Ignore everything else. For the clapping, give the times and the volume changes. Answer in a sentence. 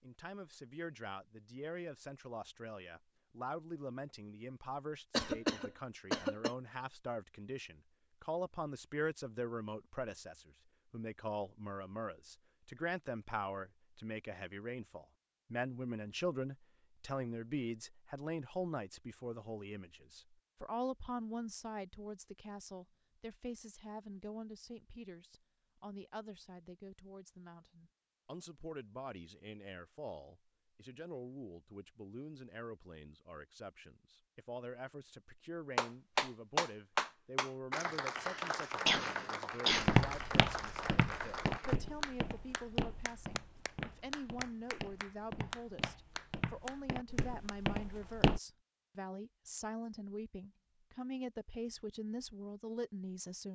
You can hear the clapping from 35.8 to 47.6 s, getting quieter.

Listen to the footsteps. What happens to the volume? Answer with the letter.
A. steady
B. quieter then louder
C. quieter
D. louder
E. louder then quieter
B.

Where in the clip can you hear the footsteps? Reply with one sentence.
The footsteps can be heard from 39.7 to 48.4 s.